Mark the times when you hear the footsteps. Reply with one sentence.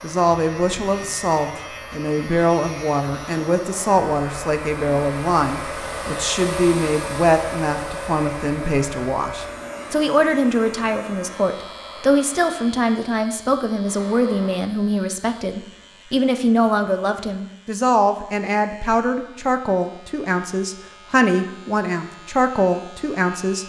The footsteps can't be heard in this clip.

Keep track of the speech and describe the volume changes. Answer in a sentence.
The loudness of the speech stays about the same.